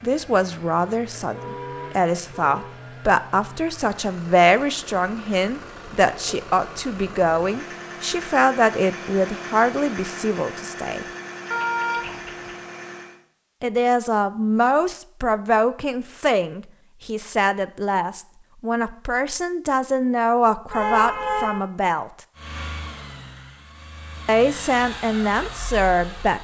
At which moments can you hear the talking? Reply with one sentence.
The talking can be heard from 0.0 to 11.1 s, from 13.6 to 22.1 s and from 24.2 to 26.4 s.